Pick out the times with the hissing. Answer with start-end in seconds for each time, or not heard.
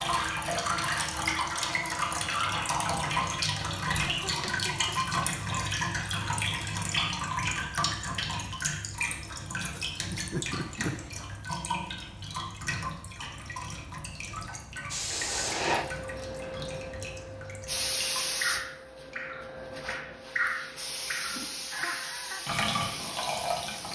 14.9-23.9.